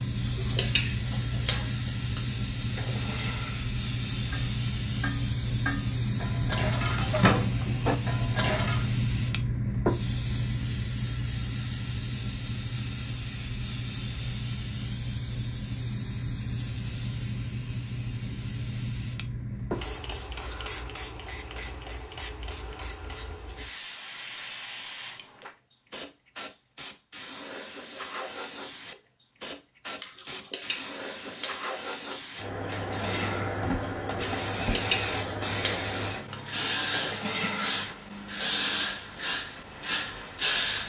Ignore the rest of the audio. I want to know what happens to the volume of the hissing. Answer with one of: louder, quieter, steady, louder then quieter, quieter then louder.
quieter then louder.